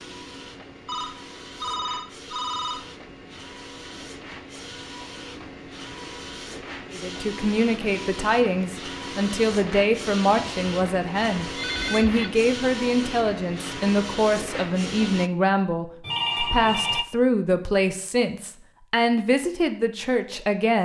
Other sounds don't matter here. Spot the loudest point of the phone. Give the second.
16 s.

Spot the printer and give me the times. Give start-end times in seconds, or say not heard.
0.0-15.3.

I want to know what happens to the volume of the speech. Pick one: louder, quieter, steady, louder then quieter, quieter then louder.
steady.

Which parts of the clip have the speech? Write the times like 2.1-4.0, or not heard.
6.9-20.8.